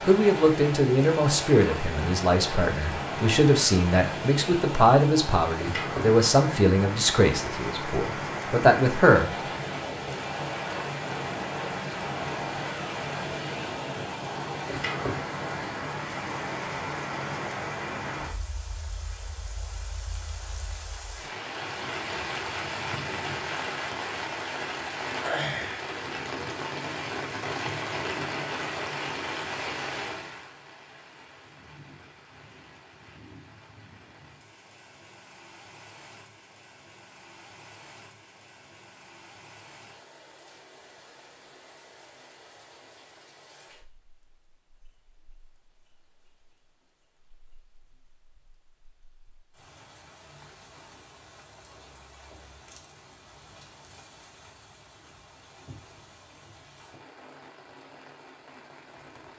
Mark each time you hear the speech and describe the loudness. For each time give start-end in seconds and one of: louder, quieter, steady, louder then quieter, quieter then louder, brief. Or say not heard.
0.0-9.3 steady.